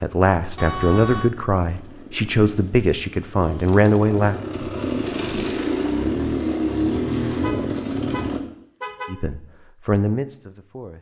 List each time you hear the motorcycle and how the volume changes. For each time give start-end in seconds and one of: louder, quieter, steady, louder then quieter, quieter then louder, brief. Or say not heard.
0.0-8.4 louder.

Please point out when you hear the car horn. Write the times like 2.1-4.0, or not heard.
0.6-1.3, 7.4-9.2.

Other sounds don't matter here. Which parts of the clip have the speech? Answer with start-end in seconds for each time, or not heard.
0.0-4.3, 9.1-10.9.